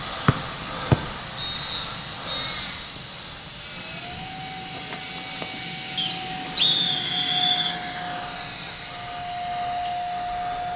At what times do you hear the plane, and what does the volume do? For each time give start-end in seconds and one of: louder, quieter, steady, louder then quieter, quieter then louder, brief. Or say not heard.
0.0-10.7 steady.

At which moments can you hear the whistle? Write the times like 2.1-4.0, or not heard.
0.2-2.6, 6.0-7.8.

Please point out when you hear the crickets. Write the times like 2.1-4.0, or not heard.
4.3-10.7.